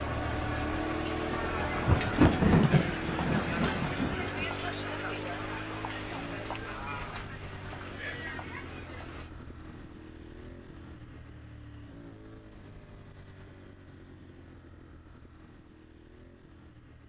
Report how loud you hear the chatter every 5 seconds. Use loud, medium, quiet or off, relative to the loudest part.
loud, medium, off, off.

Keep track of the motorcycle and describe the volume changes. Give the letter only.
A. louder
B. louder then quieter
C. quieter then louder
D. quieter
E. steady
D.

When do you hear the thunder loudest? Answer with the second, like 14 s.
2 s.